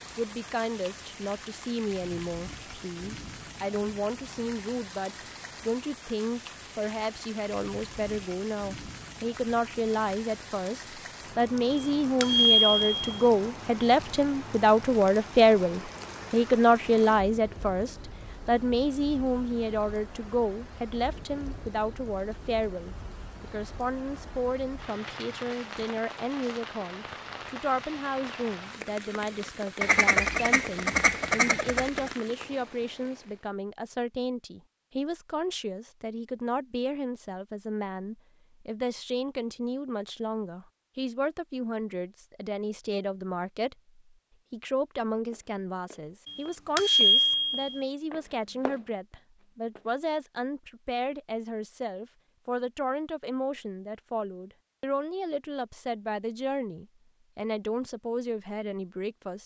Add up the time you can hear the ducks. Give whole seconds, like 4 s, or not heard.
2 s.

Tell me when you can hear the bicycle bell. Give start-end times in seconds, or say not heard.
11.7-13.2, 46.2-47.8.